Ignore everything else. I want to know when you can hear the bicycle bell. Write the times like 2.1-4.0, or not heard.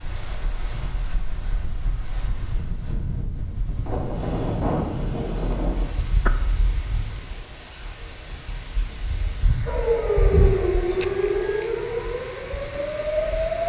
10.9-11.8.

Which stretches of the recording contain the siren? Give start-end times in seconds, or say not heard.
9.7-13.6.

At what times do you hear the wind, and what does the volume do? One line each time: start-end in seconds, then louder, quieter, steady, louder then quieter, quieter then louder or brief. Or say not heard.
0.0-13.6 louder then quieter.